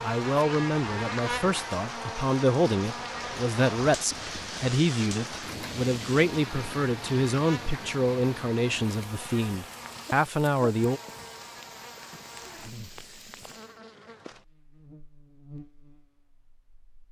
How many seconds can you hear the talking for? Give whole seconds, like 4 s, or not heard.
11 s.